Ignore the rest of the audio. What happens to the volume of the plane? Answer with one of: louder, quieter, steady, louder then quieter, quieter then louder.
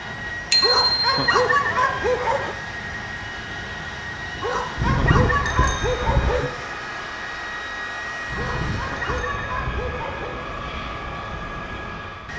steady.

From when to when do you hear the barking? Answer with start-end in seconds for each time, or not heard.
0.6-2.5, 4.4-6.5, 8.3-10.4.